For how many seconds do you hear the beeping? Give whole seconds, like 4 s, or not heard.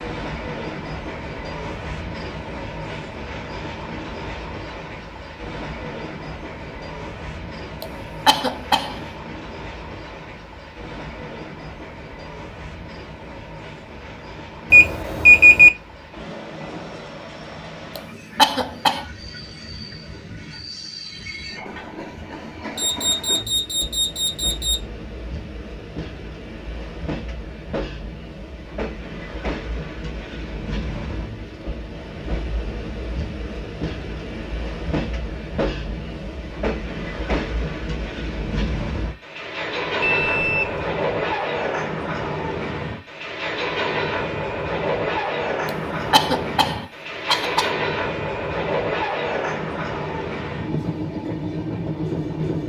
4 s.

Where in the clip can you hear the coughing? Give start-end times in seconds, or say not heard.
7.8-9.0, 17.9-19.1, 45.6-47.7.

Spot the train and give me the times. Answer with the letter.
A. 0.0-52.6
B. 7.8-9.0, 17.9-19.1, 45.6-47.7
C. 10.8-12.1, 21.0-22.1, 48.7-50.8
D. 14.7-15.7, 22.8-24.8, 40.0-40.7
A.